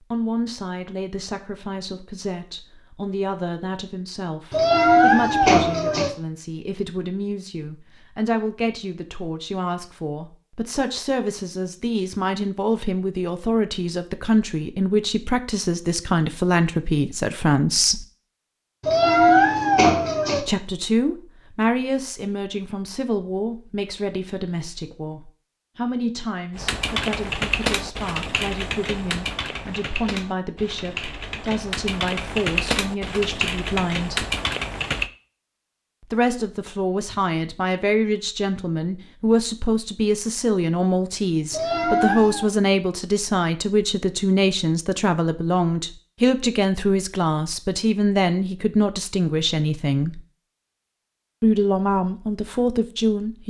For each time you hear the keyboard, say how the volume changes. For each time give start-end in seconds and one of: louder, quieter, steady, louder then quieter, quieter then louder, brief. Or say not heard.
26.6-35.1 quieter then louder.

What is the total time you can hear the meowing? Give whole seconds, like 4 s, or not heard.
4 s.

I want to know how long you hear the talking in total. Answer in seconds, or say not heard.
48 s.